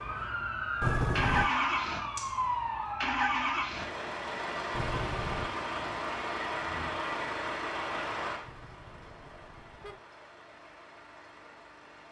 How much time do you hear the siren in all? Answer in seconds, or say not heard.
3 s.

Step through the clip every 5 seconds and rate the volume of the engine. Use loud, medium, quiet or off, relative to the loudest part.
loud, loud, quiet.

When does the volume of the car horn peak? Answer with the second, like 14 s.
1 s.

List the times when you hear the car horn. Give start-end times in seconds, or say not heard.
0.8-1.5, 4.7-5.5, 8.4-10.0.